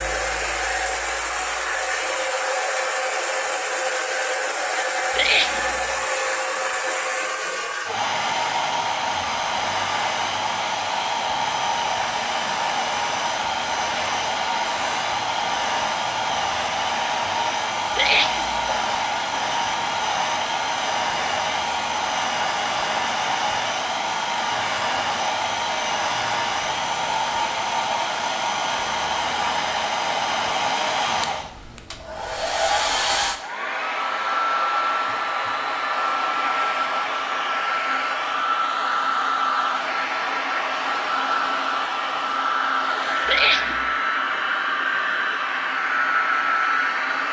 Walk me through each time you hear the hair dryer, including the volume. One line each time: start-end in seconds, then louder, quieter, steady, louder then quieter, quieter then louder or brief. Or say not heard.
0.0-47.2 steady.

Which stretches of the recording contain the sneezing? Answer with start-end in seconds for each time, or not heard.
5.2-6.0, 17.9-18.8, 43.2-43.8.